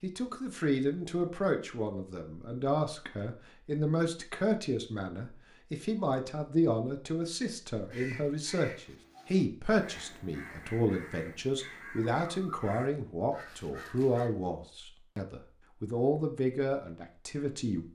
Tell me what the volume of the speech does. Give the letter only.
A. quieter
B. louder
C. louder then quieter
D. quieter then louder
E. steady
E.